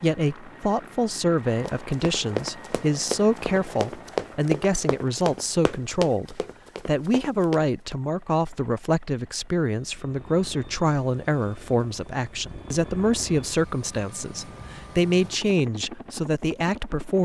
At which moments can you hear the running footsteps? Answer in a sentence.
The running footsteps can be heard from 1.6 to 8.0 s.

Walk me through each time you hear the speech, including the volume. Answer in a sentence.
The speech can be heard from 0.0 to 17.2 s, at a steady volume.